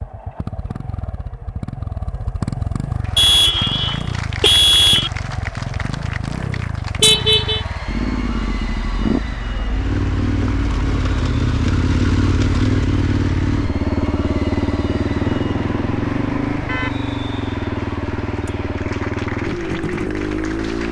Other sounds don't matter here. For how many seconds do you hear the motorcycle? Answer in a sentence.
The motorcycle can be heard for 21 seconds in total.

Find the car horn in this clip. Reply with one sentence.
You can hear the car horn from 3.1 to 5.1 s, from 7.0 to 7.7 s and from 14.9 to 16.9 s.